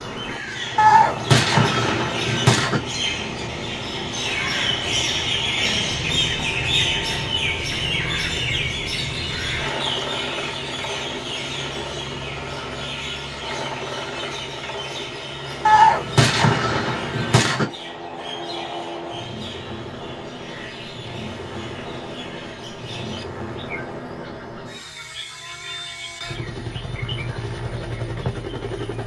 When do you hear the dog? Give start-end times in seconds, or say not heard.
not heard.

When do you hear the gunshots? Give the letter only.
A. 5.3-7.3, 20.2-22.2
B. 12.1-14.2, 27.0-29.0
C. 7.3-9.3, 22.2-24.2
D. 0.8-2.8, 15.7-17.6
D.